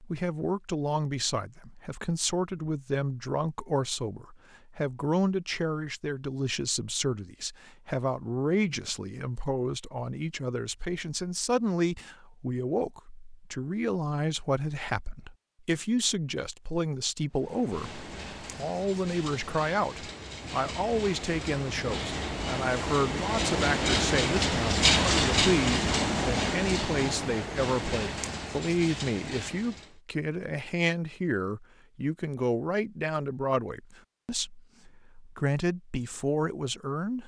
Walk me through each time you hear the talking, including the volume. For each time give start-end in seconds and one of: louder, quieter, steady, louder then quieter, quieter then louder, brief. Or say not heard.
0.0-37.2 steady.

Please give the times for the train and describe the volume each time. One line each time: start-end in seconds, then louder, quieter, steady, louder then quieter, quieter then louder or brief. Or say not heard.
17.3-30.0 louder then quieter.